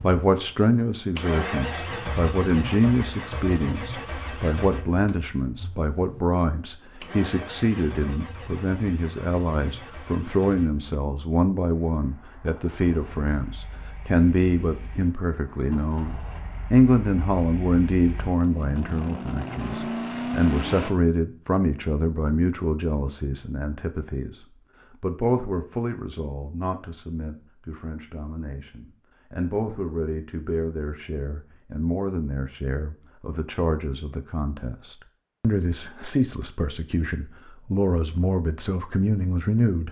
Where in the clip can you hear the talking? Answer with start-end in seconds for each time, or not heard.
0.0-39.8.